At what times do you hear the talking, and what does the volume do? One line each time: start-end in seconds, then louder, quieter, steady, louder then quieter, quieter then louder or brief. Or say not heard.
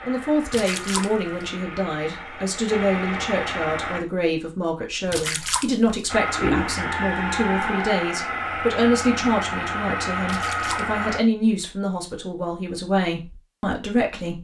0.0-14.3 steady.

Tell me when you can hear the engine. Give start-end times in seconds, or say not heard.
0.0-4.0, 6.0-11.2.